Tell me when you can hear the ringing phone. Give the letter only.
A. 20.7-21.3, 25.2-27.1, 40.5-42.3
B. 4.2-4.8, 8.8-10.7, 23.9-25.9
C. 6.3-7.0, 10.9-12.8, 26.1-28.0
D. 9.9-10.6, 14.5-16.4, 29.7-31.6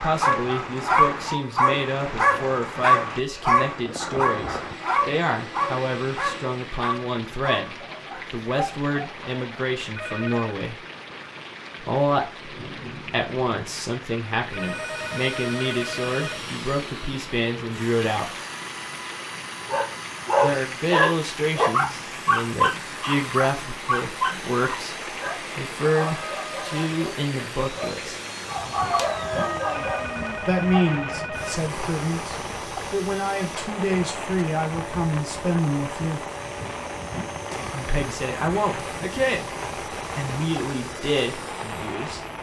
D.